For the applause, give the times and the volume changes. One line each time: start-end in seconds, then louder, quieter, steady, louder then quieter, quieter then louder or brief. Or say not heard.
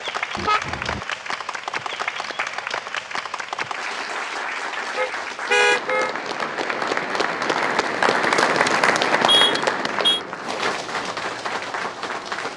0.0-12.5 louder then quieter.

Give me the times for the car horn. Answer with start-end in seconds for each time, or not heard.
0.3-1.0, 5.0-6.2, 9.2-10.2.